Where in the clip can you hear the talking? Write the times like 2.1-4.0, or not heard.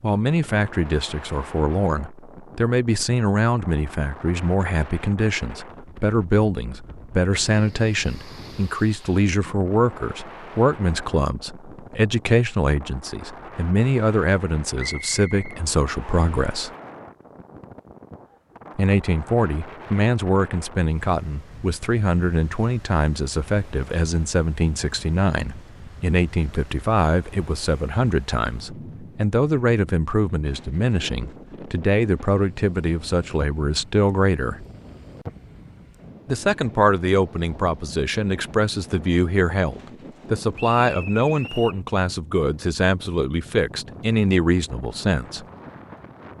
0.0-16.7, 18.8-34.6, 36.2-45.5.